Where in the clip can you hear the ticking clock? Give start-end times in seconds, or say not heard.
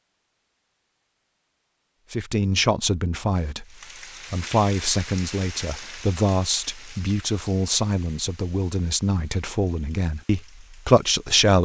not heard.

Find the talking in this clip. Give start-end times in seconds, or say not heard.
2.1-11.6.